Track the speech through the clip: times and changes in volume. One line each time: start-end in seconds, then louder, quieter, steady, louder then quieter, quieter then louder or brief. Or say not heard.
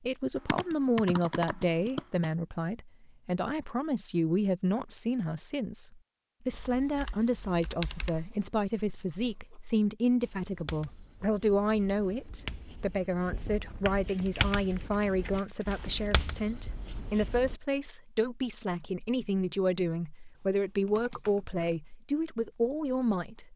0.0-23.5 steady.